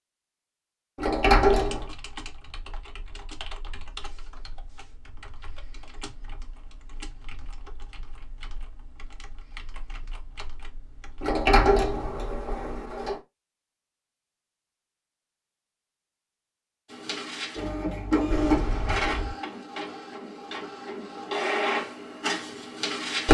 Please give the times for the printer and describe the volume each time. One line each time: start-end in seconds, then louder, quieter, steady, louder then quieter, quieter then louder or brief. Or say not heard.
16.9-23.2 quieter then louder.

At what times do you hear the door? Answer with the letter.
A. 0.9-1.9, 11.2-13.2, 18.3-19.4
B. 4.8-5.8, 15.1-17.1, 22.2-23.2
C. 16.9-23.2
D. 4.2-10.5
A.